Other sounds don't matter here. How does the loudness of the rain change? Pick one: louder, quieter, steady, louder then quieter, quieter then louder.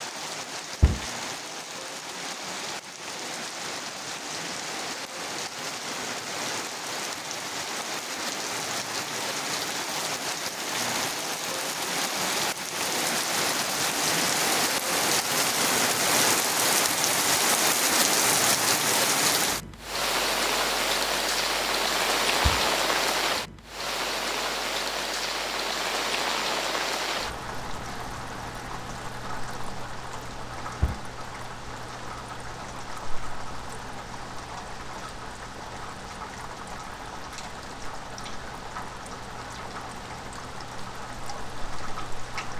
louder then quieter.